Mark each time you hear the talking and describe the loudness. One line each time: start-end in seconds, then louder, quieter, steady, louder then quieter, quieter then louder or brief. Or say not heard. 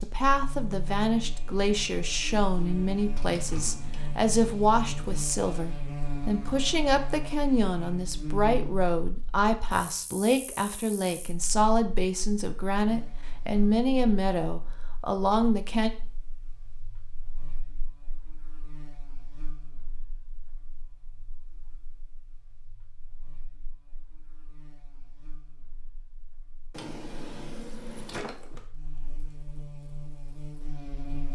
0.0-15.9 steady.